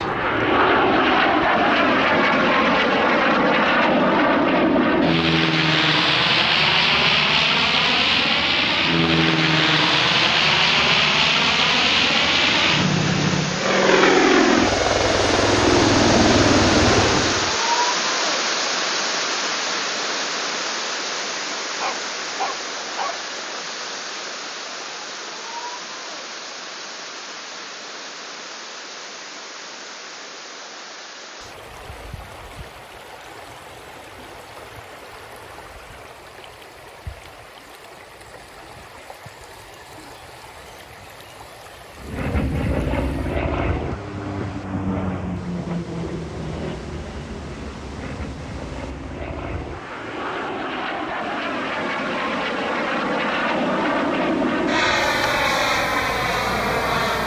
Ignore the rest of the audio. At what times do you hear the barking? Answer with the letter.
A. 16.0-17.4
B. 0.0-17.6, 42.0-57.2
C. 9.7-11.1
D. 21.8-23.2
D.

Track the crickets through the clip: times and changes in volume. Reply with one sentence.
The crickets can't be heard in this clip.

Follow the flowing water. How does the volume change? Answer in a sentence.
The volume of the flowing water goes down.